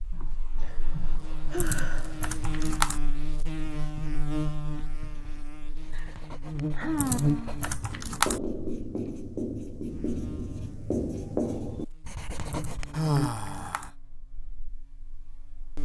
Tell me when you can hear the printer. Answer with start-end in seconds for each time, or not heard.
not heard.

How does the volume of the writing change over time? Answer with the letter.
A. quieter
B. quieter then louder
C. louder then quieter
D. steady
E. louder
E.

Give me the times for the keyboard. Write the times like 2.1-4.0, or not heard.
1.6-3.0, 7.0-8.4, 12.5-13.9.